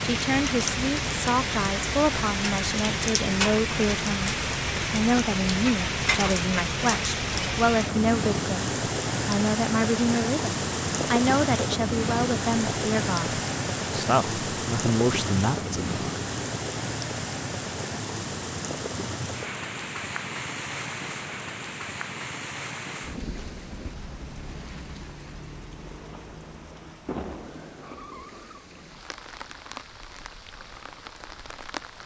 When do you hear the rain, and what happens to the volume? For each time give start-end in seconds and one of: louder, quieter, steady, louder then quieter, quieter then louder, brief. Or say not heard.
0.0-32.0 quieter.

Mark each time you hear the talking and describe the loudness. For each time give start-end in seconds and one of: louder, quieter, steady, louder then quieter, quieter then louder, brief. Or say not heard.
0.0-15.9 steady.